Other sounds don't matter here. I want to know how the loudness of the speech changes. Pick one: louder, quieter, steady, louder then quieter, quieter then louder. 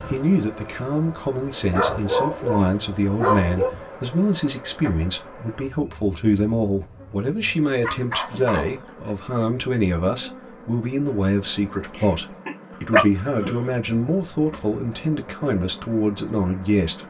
steady.